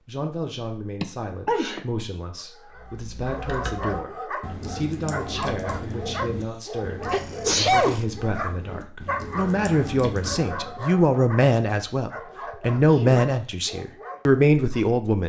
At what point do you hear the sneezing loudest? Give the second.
8 s.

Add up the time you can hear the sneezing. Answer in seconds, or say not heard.
2 s.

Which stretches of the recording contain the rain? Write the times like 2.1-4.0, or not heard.
not heard.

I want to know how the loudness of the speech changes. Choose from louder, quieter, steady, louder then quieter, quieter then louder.
louder.